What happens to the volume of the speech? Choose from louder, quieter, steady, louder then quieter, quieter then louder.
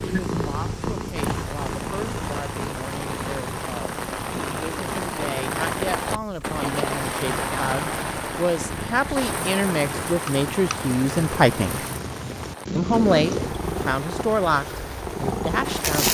louder.